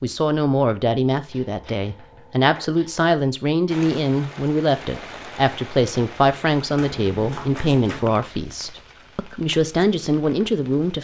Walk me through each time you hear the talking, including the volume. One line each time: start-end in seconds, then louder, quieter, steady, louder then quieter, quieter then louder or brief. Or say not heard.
0.0-10.9 steady.